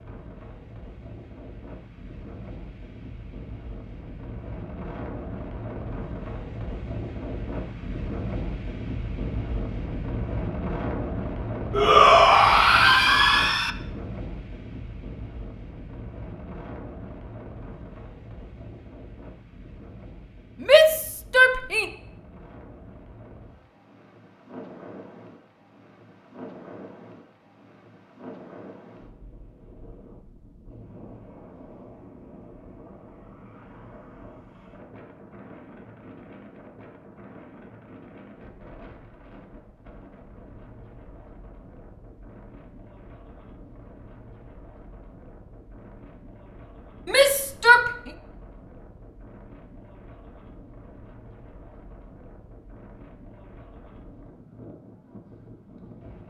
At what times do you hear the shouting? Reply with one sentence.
You can hear the shouting from 11.7 to 13.7 s, from 20.6 to 21.9 s and from 47.0 to 47.9 s.